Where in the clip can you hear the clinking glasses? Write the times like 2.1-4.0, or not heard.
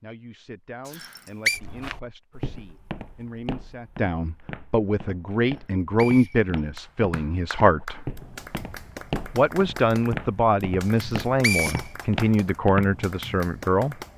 not heard.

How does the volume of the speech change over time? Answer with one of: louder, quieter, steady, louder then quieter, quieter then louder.
louder.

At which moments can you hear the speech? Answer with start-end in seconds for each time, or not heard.
0.0-8.0, 9.3-13.9.